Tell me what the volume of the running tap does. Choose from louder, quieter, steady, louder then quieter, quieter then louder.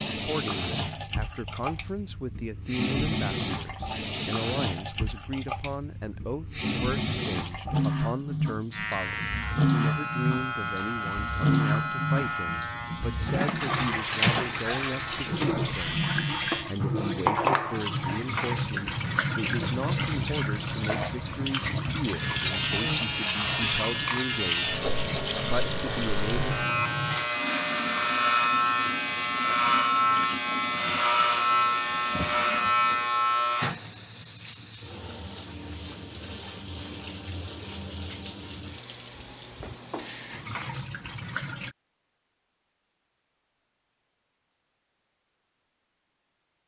quieter.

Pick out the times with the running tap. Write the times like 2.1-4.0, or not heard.
0.0-41.8.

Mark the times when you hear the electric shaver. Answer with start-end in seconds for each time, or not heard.
8.7-16.6, 22.1-33.8.